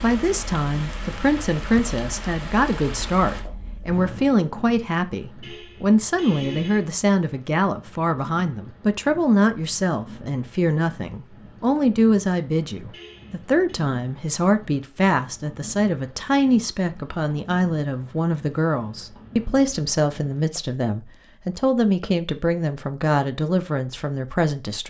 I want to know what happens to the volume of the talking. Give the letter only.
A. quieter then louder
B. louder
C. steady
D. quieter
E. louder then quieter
C.